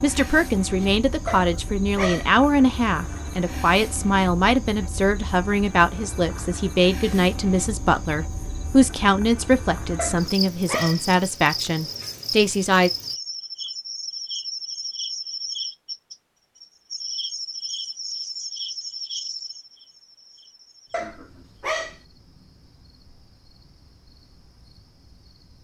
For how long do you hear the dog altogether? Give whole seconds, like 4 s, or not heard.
3 s.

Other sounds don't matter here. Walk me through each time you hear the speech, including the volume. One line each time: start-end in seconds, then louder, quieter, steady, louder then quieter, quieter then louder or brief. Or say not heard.
0.0-12.9 steady.